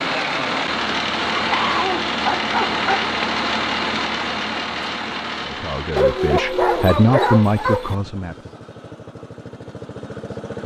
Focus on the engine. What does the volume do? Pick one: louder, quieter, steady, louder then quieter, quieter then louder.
quieter.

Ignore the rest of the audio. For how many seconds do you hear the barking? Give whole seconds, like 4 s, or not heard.
4 s.